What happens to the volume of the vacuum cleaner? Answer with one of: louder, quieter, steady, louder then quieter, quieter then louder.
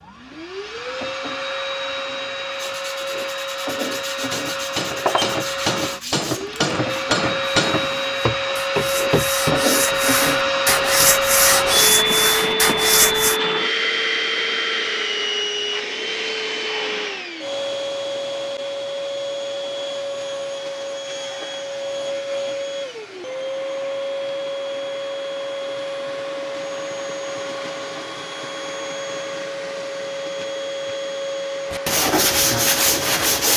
louder then quieter.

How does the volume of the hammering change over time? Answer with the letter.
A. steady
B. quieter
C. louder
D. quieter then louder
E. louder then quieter
B.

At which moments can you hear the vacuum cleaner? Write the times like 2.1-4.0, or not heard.
0.0-33.5.